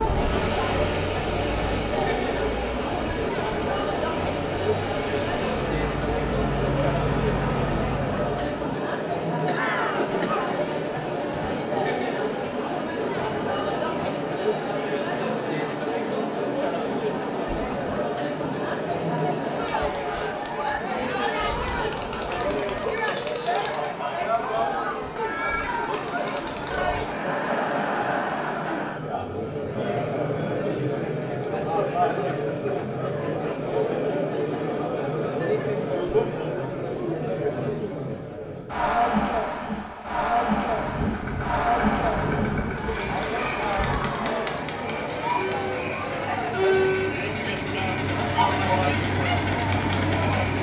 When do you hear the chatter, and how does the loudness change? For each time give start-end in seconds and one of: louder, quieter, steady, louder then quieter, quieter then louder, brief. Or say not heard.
0.0-50.5 steady.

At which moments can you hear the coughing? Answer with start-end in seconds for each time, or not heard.
9.4-10.6.